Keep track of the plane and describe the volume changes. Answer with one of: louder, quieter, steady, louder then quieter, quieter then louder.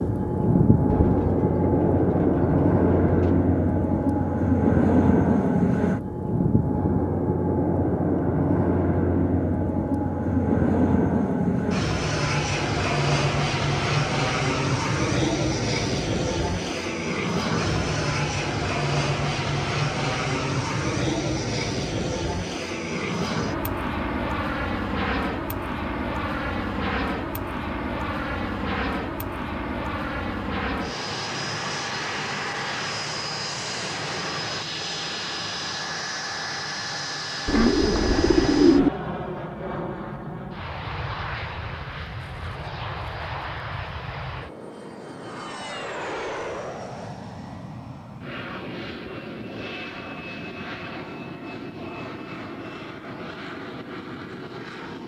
quieter.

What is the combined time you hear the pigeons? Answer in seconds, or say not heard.
4 s.